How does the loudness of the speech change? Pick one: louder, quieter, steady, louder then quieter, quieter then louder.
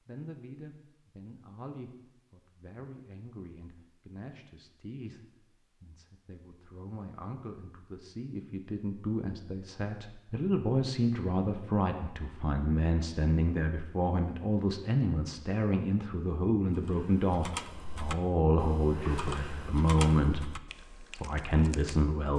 louder.